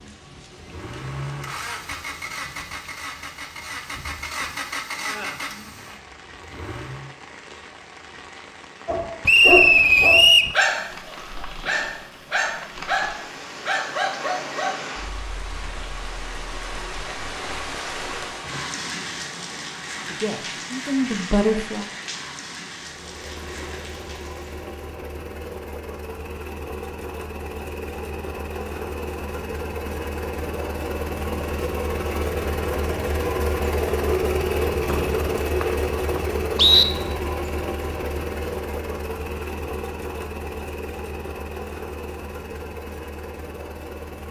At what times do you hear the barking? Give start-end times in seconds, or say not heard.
8.8-14.8.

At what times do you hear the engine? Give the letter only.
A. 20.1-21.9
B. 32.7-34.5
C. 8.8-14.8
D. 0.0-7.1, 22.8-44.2
D.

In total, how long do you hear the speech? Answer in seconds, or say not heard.
2 s.